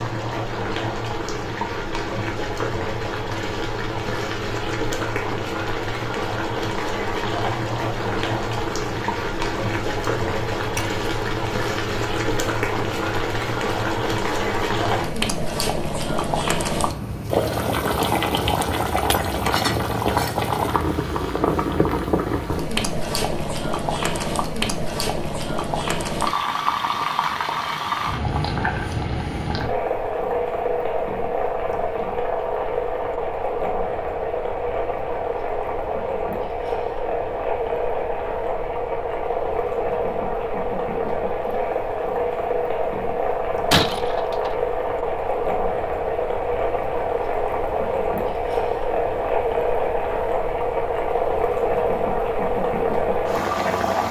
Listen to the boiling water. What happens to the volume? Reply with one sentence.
The loudness of the boiling water stays about the same.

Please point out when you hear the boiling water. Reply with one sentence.
You can hear the boiling water from 0.0 to 54.0 s.